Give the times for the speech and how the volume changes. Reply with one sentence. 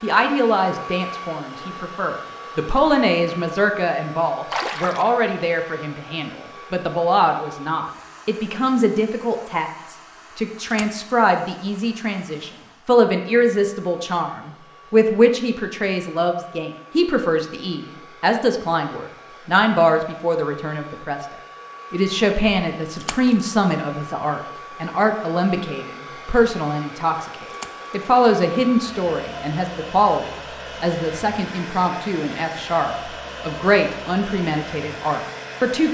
The speech can be heard from 0.0 to 35.8 s, at a steady volume.